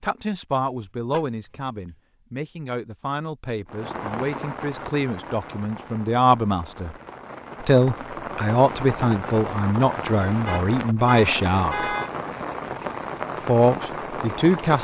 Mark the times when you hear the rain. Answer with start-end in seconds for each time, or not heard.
3.6-14.8.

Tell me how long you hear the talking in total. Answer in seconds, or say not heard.
13 s.